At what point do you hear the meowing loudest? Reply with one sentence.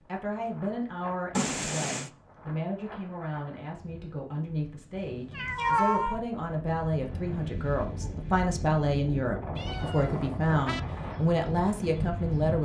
The loudest moment of the meowing is at 6 seconds.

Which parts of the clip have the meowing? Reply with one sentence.
You can hear the meowing from 1.4 to 2.1 s, from 5.3 to 6.2 s and from 9.6 to 10.8 s.